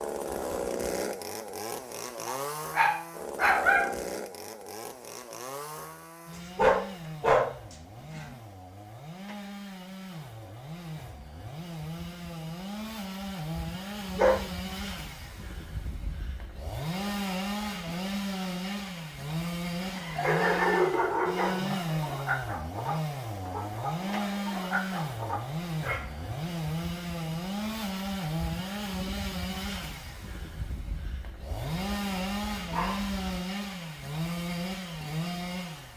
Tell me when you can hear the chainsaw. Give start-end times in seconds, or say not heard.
0.0-35.9.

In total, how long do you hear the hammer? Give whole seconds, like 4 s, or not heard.
not heard.